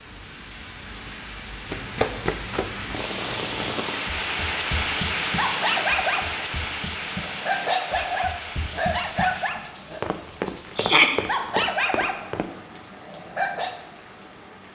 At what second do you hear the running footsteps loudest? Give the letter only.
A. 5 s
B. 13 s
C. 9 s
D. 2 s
D.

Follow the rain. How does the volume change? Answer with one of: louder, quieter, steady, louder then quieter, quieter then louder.
louder then quieter.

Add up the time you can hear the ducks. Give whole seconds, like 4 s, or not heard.
not heard.